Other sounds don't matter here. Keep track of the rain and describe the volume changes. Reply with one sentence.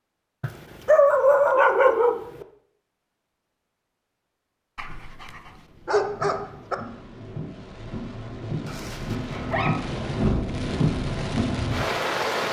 The loudness of the rain goes up.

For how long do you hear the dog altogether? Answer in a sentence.
The dog can be heard for 5 seconds in total.